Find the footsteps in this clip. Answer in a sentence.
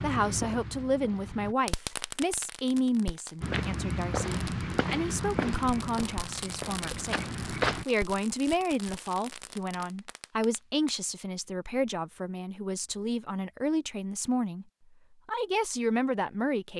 You can hear the footsteps from 0.0 to 1.6 s and from 3.4 to 7.8 s.